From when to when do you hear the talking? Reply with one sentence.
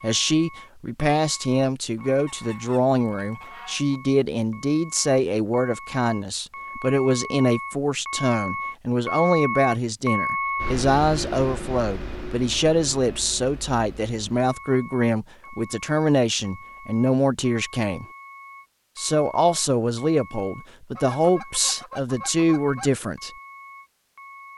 You can hear the talking from 0.0 to 18.1 s and from 18.9 to 23.3 s.